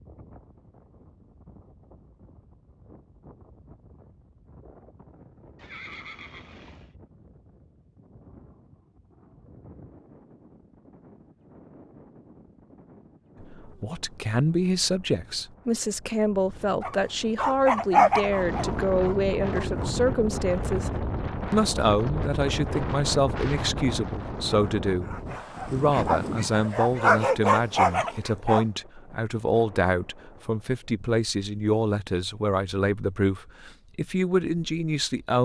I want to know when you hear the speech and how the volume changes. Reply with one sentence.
You can hear the speech from 13.4 to 20.9 s, at a steady volume; and from 21.5 to 35.4 s, at a steady volume.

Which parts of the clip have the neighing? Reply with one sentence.
The neighing can be heard from 5.5 to 6.9 s.